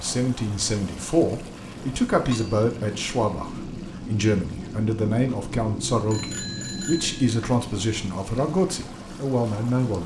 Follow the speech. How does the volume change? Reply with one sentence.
The loudness of the speech stays about the same.